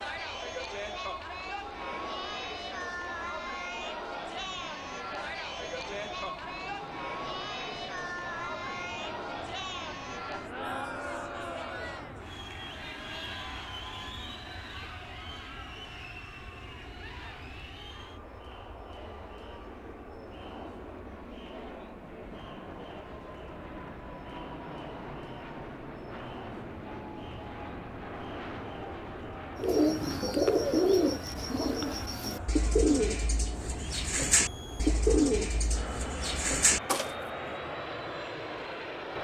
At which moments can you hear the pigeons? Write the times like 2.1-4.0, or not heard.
29.6-37.1.